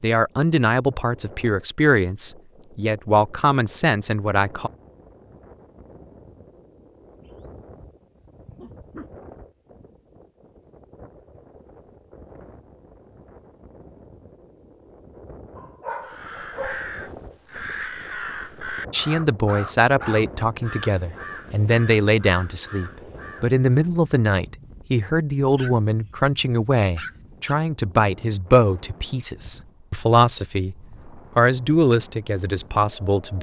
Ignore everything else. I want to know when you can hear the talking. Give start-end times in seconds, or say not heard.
0.0-4.7, 18.9-33.3.